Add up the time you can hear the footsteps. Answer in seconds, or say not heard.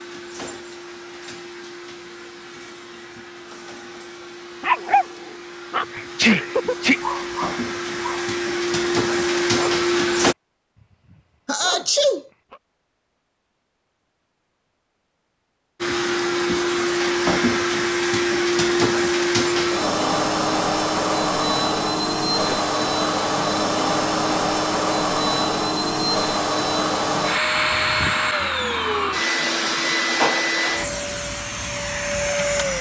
not heard.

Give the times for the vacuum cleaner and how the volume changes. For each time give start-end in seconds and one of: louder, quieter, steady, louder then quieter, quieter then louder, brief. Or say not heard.
0.0-10.3 louder
15.8-32.7 steady.